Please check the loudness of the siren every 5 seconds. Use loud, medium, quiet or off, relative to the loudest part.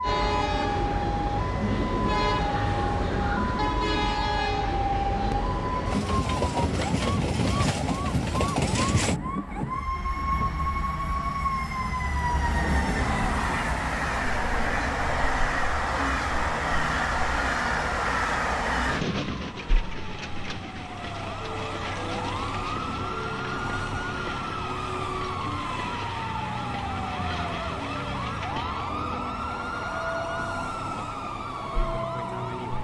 loud, loud, loud, medium, loud, loud, loud.